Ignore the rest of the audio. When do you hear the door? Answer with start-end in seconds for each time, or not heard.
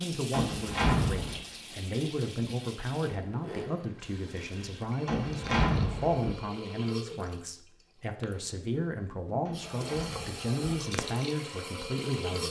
0.3-1.4, 5.0-6.3, 9.4-10.9.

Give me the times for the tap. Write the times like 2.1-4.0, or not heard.
0.0-12.4.